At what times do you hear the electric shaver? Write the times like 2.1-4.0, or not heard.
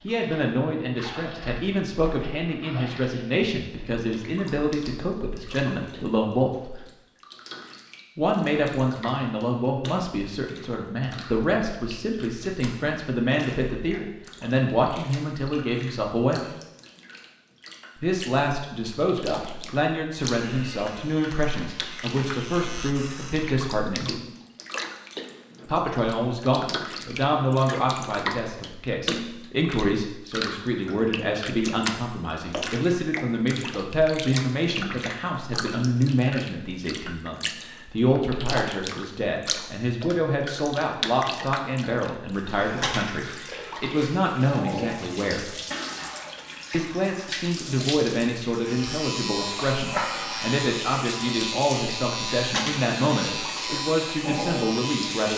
20.4-23.6, 48.5-55.3.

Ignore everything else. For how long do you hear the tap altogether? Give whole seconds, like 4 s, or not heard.
55 s.